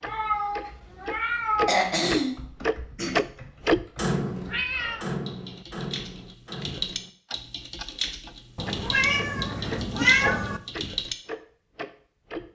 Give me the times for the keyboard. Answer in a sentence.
You can hear the keyboard from 2.3 to 11.2 s.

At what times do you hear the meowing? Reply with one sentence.
The meowing can be heard from 0.0 to 2.0 s, from 4.5 to 5.0 s and from 8.6 to 10.6 s.